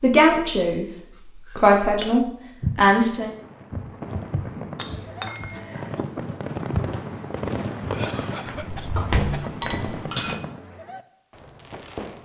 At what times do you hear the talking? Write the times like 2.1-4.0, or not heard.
0.0-3.3.